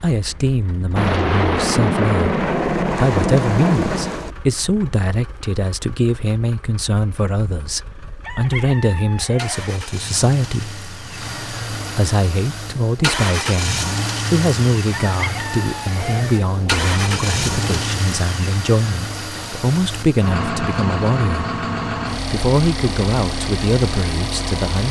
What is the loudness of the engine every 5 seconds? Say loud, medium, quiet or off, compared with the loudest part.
quiet, quiet, loud, loud, loud.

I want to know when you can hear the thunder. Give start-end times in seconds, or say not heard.
0.9-4.3, 15.9-17.9.